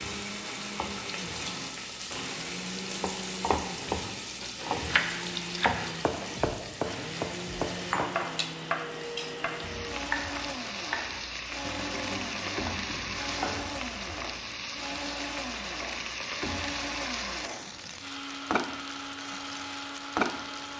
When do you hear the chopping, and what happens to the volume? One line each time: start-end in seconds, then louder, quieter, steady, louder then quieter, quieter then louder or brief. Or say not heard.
3.0-13.7 quieter.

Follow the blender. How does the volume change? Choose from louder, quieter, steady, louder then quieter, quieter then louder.
steady.